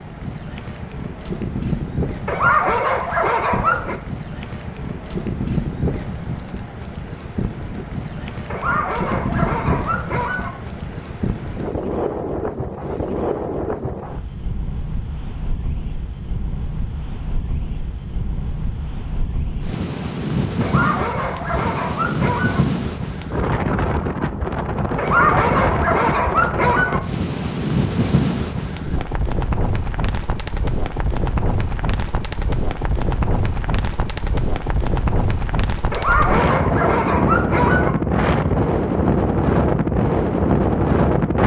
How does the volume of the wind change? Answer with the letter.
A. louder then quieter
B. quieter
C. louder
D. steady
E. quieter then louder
C.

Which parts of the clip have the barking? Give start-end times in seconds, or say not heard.
2.2-4.0, 8.5-10.5, 20.6-22.6, 24.9-27.0, 35.9-38.0.